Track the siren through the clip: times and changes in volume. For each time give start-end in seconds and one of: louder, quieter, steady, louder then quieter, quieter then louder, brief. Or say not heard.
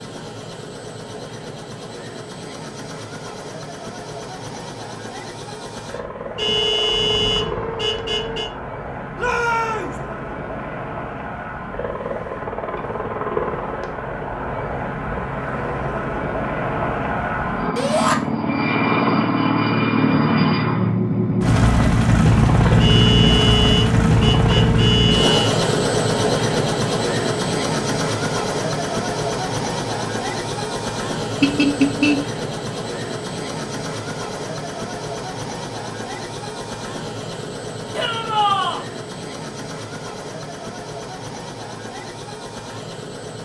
not heard.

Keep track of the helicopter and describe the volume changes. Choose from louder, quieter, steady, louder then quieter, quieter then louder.
louder then quieter.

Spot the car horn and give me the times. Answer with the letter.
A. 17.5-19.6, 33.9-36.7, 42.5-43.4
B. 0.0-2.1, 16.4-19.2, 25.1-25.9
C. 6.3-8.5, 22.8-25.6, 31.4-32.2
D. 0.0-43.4
C.